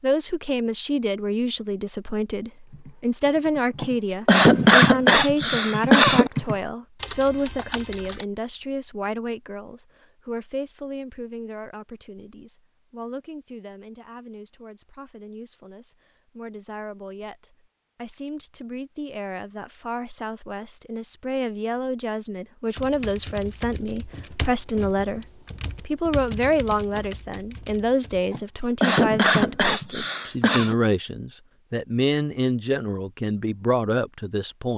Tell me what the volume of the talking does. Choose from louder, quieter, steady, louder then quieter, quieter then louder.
quieter then louder.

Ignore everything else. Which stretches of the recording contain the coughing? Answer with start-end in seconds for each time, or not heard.
3.8-6.3, 28.3-30.8.